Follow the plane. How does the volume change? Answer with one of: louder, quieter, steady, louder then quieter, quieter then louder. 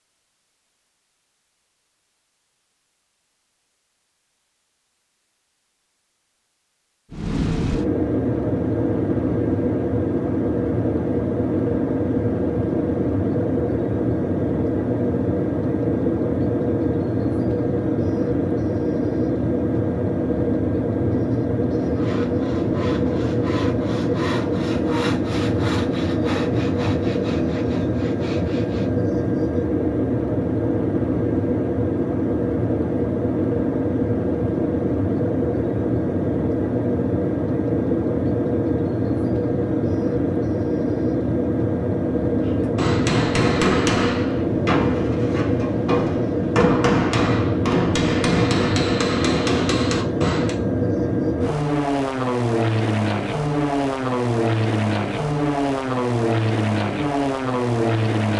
steady.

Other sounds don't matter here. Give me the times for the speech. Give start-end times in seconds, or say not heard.
not heard.